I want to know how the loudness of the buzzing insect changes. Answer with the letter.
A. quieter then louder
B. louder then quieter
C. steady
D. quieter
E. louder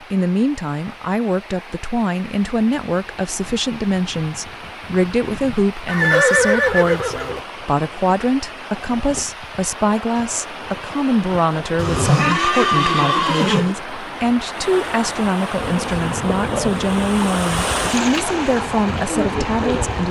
A.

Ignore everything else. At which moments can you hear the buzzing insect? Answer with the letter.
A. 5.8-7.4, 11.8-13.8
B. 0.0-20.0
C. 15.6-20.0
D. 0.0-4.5
C.